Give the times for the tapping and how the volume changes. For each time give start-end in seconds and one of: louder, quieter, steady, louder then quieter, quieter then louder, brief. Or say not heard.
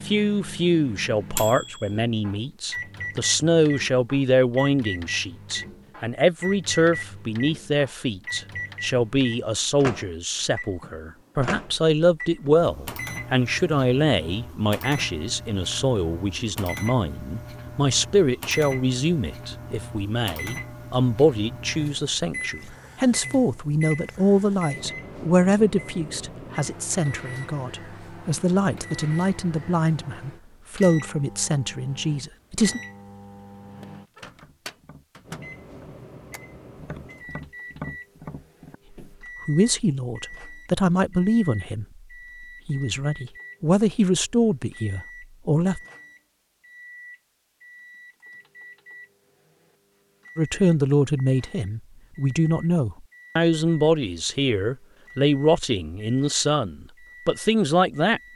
33.8-39.1 louder.